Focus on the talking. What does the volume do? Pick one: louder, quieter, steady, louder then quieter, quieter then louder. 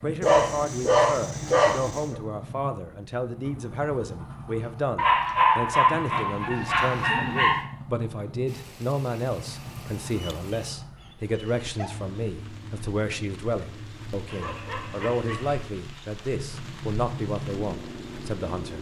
steady.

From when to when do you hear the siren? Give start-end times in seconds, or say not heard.
not heard.